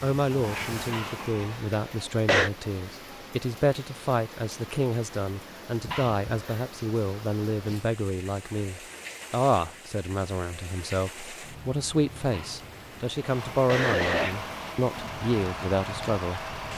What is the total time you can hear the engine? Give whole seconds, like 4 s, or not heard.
5 s.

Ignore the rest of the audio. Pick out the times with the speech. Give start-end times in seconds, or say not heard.
0.0-16.7.